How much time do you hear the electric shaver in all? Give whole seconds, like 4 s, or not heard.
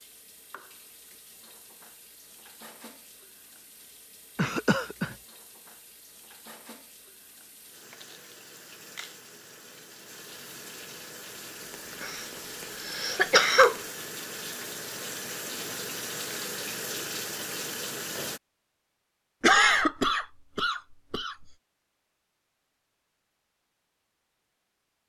not heard.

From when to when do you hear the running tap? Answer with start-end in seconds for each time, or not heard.
0.0-18.4.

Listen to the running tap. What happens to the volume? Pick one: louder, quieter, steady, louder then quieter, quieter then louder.
louder.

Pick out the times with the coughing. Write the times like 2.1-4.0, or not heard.
4.3-5.2, 11.7-13.8, 19.4-21.4.